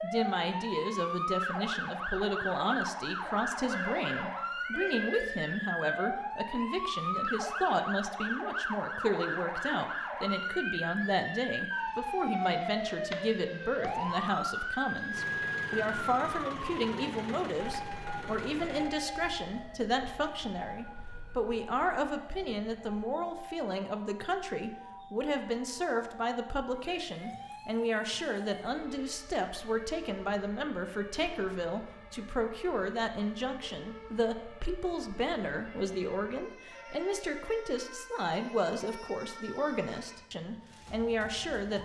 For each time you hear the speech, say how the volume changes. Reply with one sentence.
You can hear the speech from 0.0 to 41.7 s, at a steady volume.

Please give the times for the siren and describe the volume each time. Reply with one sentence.
You can hear the siren from 0.0 to 41.7 s, getting quieter.